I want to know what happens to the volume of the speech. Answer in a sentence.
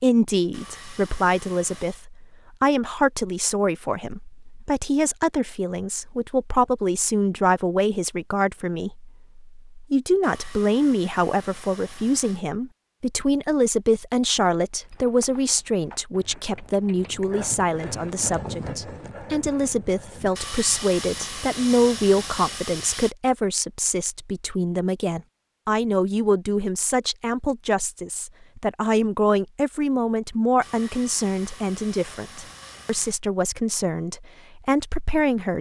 The loudness of the speech stays about the same.